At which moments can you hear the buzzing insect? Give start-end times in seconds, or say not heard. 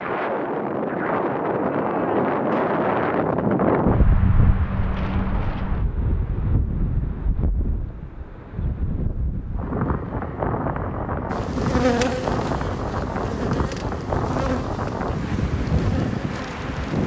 11.3-17.0.